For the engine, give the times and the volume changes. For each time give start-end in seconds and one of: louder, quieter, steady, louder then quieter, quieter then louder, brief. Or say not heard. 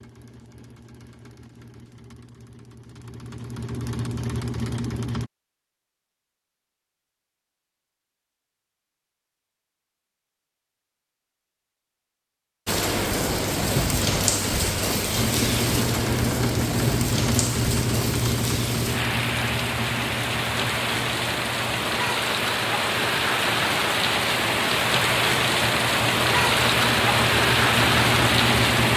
0.0-5.3 louder
15.1-28.9 quieter then louder.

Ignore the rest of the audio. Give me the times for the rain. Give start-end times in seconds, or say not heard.
12.7-28.9.